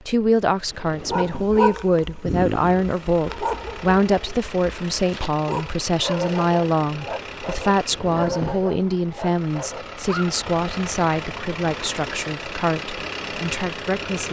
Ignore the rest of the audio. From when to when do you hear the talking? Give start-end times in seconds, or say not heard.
0.1-14.2.